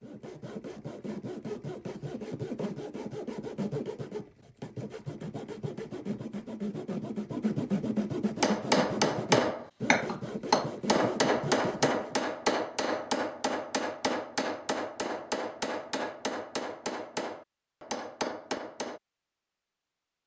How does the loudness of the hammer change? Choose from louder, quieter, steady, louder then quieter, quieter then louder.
quieter.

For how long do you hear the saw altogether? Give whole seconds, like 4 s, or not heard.
12 s.